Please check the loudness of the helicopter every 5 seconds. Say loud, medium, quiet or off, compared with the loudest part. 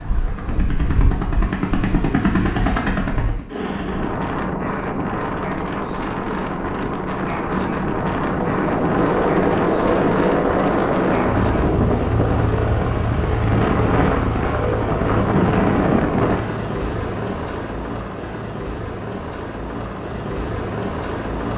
loud, loud, loud, medium, medium.